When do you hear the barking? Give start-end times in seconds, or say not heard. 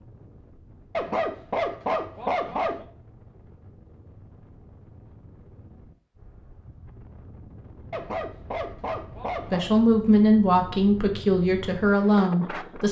0.9-2.9, 7.9-9.7.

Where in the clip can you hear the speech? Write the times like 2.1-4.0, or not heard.
9.5-12.8.